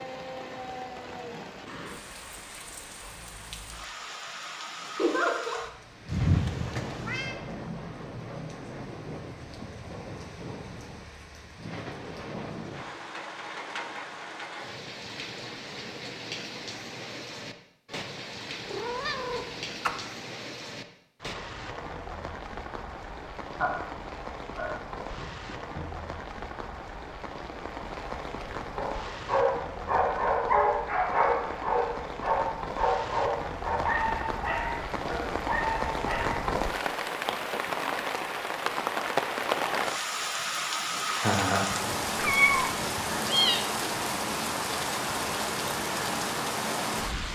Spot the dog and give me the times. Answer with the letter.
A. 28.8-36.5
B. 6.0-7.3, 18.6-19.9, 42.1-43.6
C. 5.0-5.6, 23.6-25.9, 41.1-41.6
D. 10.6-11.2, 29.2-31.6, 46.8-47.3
A.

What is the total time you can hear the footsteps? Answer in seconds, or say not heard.
not heard.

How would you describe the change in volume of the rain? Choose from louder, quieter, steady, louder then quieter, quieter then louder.
louder.